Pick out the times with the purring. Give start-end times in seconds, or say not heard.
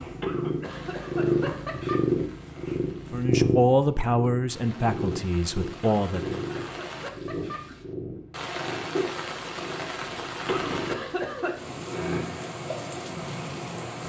0.0-13.9.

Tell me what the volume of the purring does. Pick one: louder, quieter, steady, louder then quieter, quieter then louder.
quieter.